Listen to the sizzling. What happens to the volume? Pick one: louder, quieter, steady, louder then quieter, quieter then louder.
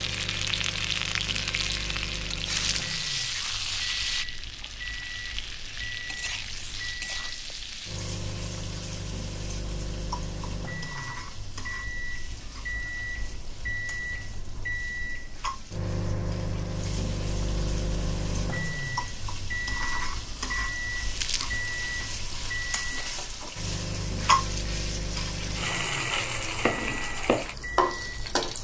quieter then louder.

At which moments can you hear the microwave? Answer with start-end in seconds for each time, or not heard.
0.0-28.6.